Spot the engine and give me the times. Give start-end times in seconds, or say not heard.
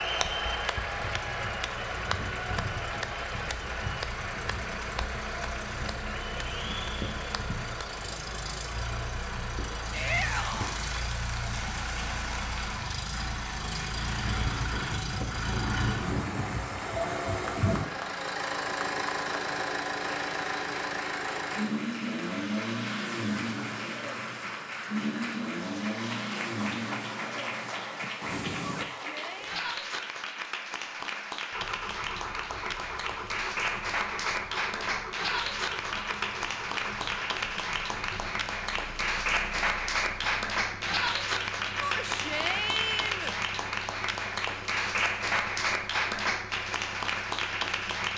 0.0-28.9, 31.5-48.1.